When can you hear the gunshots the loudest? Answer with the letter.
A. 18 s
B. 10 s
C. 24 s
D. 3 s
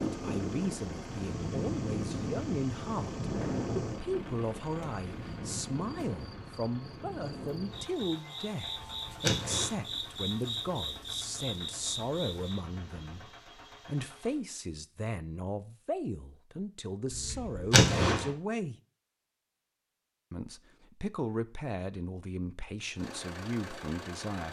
A.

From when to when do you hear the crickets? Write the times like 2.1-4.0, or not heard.
0.0-12.7.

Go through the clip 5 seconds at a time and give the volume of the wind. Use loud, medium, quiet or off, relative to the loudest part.
loud, medium, quiet, off, off.